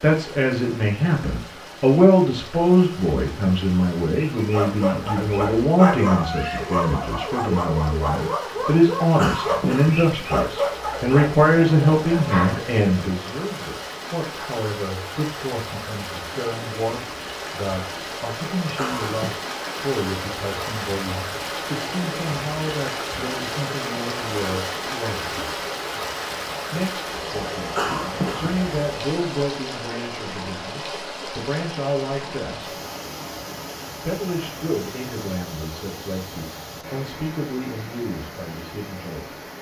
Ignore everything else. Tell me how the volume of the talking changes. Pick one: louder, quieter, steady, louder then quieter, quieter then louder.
quieter.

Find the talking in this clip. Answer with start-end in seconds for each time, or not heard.
0.0-25.6, 26.7-32.8, 34.0-39.4.